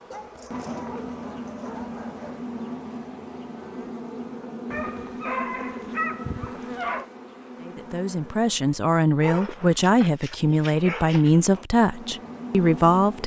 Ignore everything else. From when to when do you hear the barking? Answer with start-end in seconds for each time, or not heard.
0.1-2.5, 4.7-7.1, 9.2-11.4.